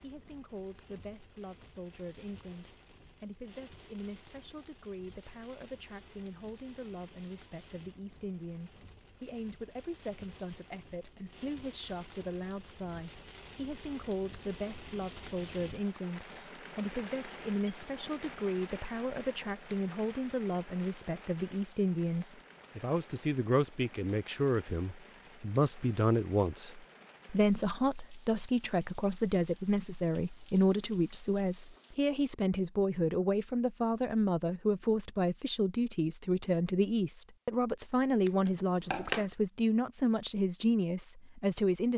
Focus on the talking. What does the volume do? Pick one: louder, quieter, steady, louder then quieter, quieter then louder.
louder.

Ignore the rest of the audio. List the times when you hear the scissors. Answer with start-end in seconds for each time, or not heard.
38.2-39.2.